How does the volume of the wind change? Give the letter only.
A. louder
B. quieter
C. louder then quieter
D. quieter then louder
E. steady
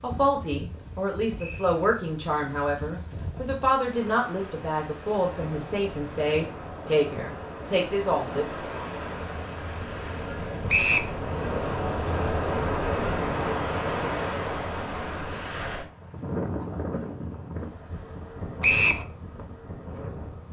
C.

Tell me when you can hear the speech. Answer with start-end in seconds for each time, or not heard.
0.0-8.4.